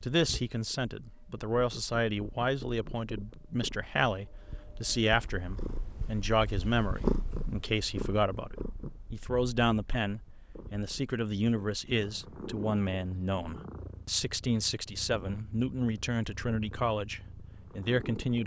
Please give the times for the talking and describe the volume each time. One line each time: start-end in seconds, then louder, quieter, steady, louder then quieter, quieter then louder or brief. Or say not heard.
0.0-18.4 steady.